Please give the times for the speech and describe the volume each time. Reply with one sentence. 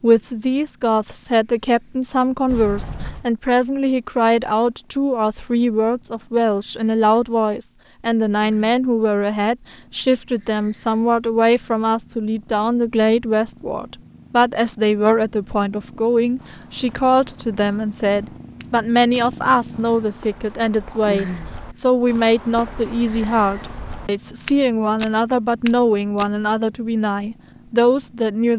The speech can be heard from 0.0 to 28.5 s, at a steady volume.